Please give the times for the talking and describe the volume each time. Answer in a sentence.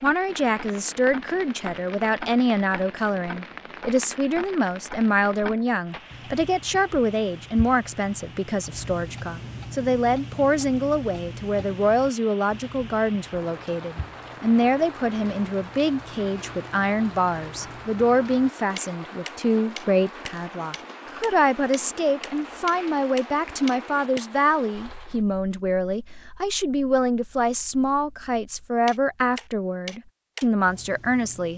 The talking can be heard from 0.0 to 31.5 s, at a steady volume.